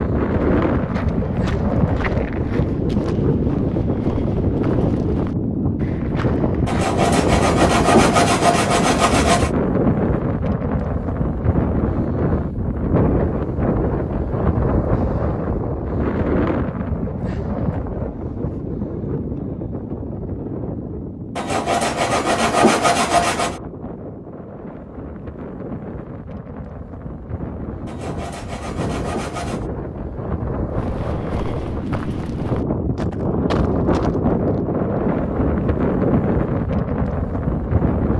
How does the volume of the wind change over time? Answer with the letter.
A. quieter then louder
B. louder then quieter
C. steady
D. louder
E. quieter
A.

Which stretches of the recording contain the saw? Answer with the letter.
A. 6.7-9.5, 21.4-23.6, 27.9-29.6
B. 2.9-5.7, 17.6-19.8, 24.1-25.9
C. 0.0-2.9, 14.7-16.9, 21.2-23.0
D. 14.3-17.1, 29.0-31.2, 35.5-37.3
A.